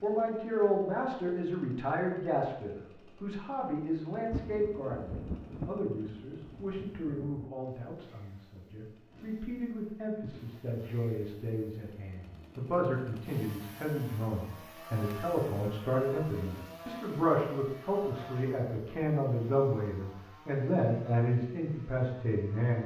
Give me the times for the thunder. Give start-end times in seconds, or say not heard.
4.2-7.5.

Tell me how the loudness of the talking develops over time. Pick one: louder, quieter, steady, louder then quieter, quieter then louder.
quieter then louder.